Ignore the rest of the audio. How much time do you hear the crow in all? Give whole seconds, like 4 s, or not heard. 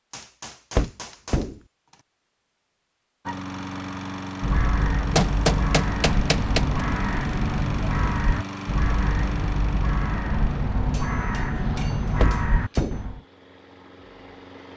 9 s.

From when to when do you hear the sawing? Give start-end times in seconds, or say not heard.
not heard.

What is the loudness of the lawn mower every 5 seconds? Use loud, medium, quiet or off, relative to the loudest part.
loud, loud, medium.